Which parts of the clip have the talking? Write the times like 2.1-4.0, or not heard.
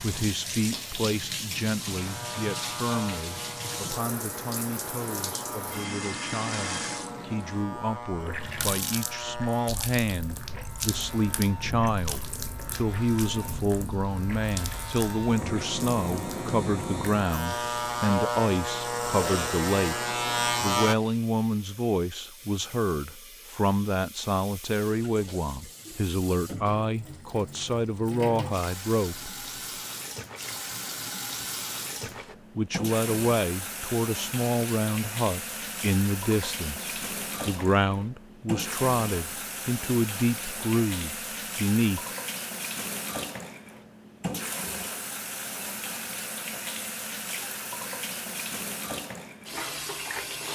0.0-29.3, 32.1-42.0.